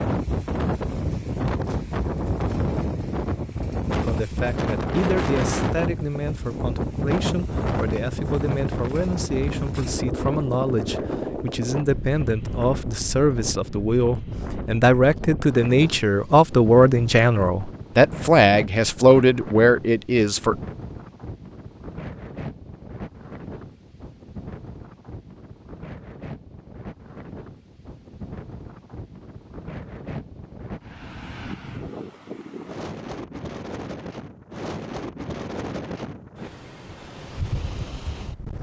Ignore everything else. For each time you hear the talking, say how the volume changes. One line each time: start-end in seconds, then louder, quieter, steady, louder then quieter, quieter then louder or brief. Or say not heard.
4.0-20.6 louder.